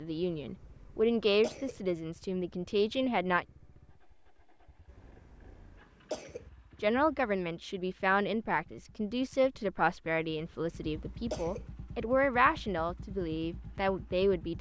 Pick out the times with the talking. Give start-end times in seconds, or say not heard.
0.0-3.5, 6.8-14.5.